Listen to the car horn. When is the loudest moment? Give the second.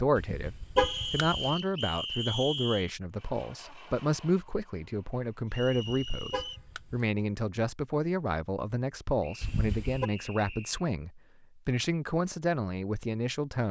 1 s.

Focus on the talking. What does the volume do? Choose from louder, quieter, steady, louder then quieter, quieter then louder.
steady.